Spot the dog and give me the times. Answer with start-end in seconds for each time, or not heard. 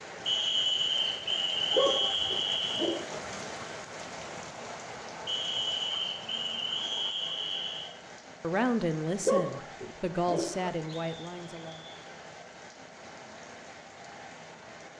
1.7-3.2, 9.2-10.7.